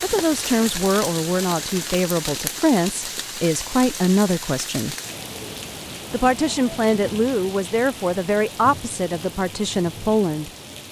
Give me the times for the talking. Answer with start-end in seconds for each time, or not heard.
0.0-5.0, 6.1-10.5.